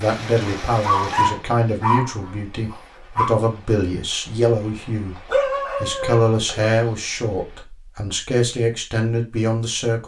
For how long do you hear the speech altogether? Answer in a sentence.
The speech can be heard for 9 seconds in total.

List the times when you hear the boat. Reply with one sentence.
You can't hear the boat here.